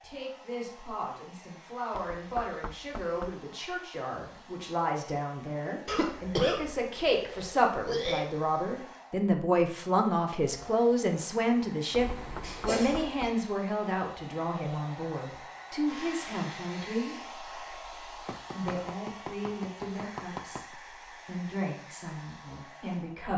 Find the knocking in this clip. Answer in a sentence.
The knocking can be heard from 1.9 to 3.5 s, from 12.2 to 13.4 s and from 18.2 to 20.8 s.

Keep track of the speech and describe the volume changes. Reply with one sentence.
The loudness of the speech goes up, then down.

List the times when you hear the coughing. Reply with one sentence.
You can hear the coughing from 5.8 to 8.2 s and from 11.9 to 13.1 s.